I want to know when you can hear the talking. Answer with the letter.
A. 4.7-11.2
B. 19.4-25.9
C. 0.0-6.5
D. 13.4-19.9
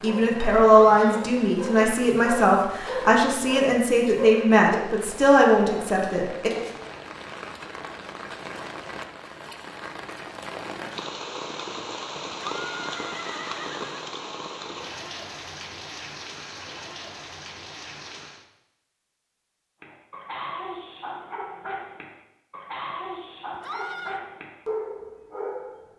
C.